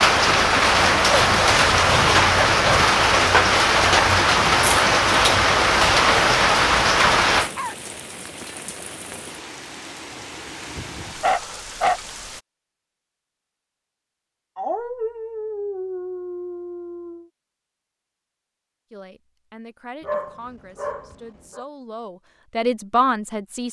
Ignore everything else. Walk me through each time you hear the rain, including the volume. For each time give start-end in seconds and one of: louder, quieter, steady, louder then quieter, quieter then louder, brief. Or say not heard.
0.0-12.4 quieter.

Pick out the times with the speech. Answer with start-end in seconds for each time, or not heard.
18.9-23.6.